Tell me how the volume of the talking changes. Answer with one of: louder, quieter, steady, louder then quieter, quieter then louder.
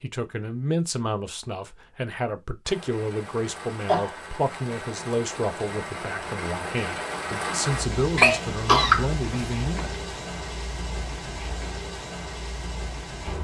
steady.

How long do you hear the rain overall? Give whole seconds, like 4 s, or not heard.
11 s.